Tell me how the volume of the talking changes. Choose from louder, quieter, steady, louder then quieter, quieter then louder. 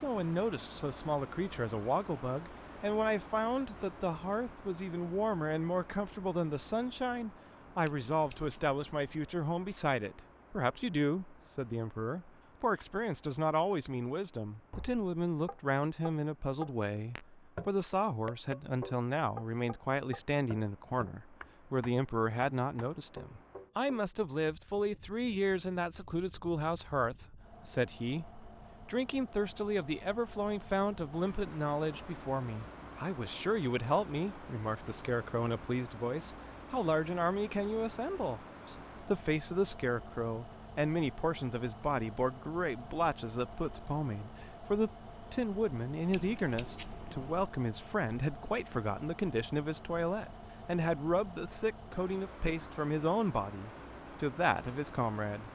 steady.